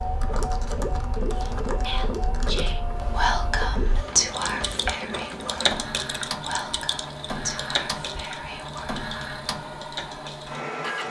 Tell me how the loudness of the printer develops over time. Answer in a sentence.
The loudness of the printer stays about the same.